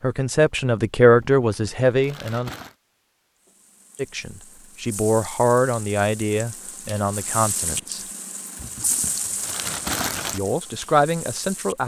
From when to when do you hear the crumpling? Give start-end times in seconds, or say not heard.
1.2-2.8, 8.6-10.4.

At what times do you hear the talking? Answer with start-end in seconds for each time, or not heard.
0.0-2.5, 4.0-8.0, 10.3-11.8.